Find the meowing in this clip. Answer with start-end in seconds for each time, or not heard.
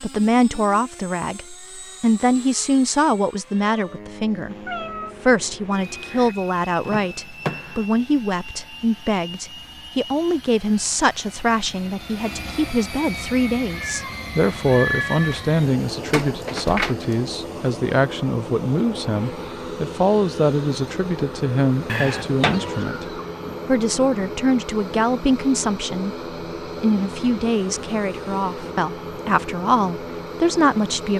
4.5-6.3, 13.7-15.4, 22.1-23.6.